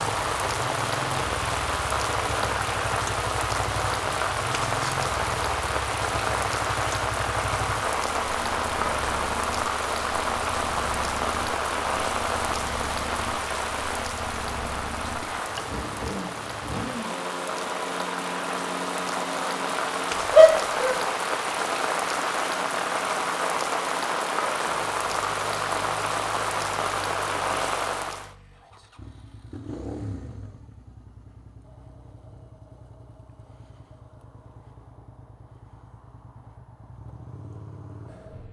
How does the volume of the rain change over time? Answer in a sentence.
The volume of the rain stays about the same.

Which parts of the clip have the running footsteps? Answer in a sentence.
The running footsteps can't be heard in this clip.